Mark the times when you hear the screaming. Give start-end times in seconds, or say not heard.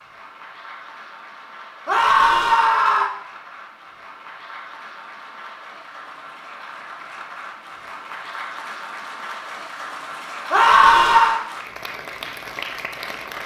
1.9-3.1, 10.5-11.4.